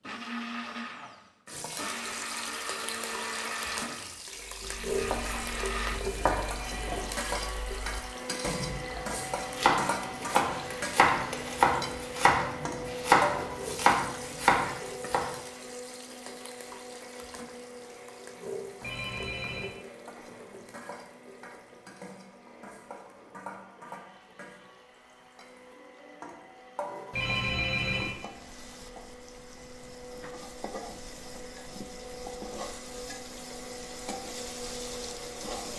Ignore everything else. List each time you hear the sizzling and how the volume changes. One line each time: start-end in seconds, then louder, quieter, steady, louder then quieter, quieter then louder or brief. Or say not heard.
1.4-35.7 quieter.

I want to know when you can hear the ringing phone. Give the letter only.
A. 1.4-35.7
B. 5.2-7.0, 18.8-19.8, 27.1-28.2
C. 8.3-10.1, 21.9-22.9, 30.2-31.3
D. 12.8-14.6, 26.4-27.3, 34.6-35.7
B.